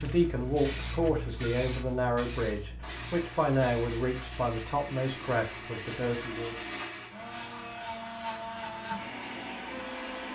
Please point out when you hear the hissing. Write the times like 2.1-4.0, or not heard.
0.0-10.1.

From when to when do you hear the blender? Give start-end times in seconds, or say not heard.
0.0-10.3.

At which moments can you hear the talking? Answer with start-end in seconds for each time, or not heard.
0.0-6.5.